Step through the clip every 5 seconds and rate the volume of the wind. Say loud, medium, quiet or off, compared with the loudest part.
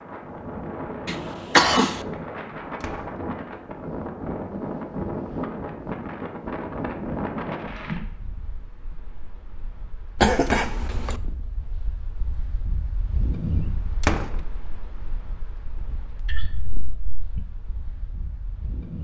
loud, loud, medium, quiet.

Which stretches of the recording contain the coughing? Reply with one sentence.
The coughing can be heard from 1.1 to 1.9 s, from 10.2 to 11.2 s and from 16.2 to 17.4 s.